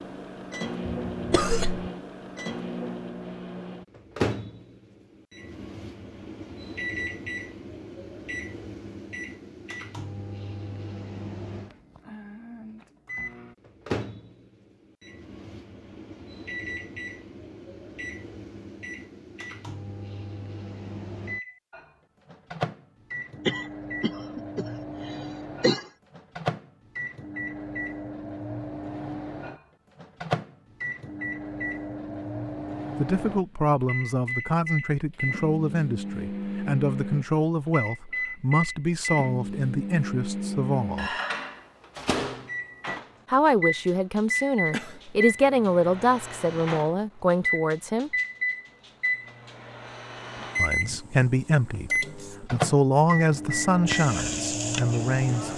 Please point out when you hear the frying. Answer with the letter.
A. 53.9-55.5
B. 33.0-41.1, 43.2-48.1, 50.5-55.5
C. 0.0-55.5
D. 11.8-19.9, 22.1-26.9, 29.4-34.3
A.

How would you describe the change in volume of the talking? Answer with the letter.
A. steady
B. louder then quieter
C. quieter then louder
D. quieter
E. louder
A.